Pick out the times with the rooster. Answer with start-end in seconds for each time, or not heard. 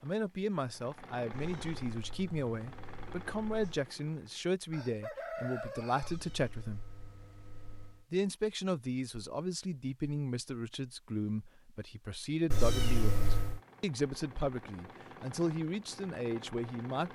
4.7-6.2.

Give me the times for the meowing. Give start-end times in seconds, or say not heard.
1.3-3.8, 6.0-8.1, 12.5-13.6.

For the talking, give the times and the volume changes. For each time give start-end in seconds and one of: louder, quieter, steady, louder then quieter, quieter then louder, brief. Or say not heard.
0.0-6.8 steady
8.1-17.1 steady.